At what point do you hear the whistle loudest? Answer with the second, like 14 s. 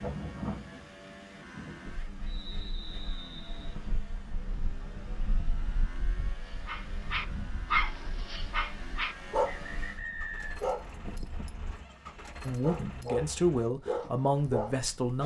10 s.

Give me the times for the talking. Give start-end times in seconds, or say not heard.
12.4-15.2.